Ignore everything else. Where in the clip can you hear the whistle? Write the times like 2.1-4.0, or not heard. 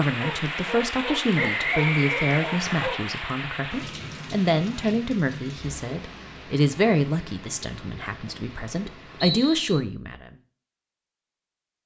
1.4-2.9, 9.2-9.8.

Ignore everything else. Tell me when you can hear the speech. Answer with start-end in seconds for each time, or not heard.
0.0-10.3.